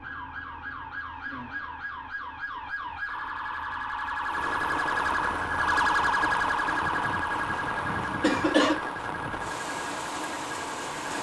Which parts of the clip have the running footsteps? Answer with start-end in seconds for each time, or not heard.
not heard.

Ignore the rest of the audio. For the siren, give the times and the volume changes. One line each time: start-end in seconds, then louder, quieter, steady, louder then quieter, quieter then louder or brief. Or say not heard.
0.0-11.1 louder then quieter.